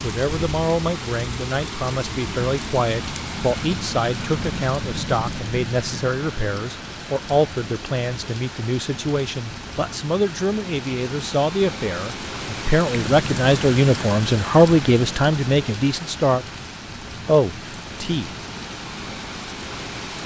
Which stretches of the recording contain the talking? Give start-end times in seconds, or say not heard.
0.0-16.4, 17.2-18.3.